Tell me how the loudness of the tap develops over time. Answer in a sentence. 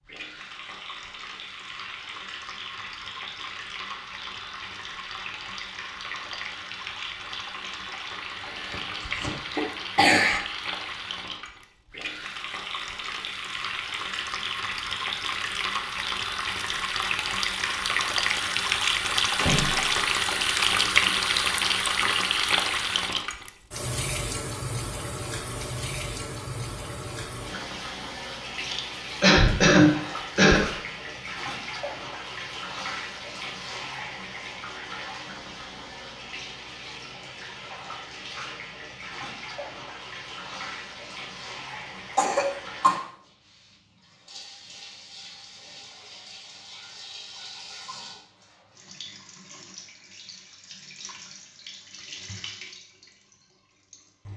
The volume of the tap goes up, then down.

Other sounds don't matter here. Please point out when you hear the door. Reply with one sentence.
The door can be heard from 19.4 to 20.1 s.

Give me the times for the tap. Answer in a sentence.
The tap can be heard from 0.0 to 54.3 s.